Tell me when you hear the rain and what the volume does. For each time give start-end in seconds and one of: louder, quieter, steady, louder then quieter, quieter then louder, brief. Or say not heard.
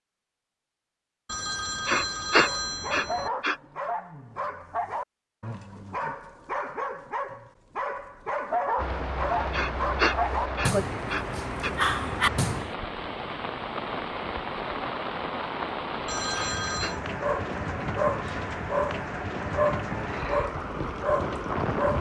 8.8-21.9 steady.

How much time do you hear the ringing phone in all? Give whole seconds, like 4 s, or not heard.
3 s.